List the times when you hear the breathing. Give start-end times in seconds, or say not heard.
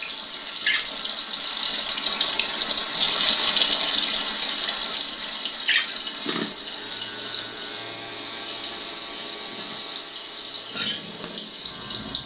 not heard.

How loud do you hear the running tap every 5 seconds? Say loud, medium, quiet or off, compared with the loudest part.
loud, medium, medium.